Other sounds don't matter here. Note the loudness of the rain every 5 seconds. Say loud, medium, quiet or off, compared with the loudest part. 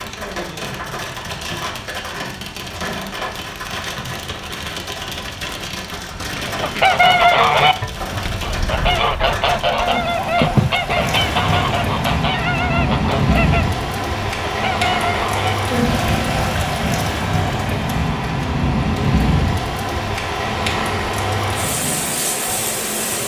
medium, medium, loud, loud, loud.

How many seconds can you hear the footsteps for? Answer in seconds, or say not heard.
not heard.